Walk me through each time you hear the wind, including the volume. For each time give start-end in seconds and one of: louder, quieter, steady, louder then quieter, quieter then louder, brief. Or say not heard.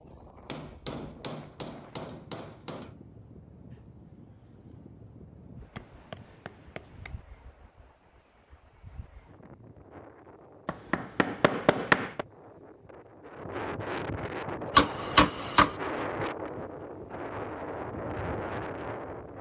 0.0-19.3 louder.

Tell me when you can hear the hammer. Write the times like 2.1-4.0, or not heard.
0.5-2.9, 5.8-7.2, 10.7-12.2, 14.8-15.8.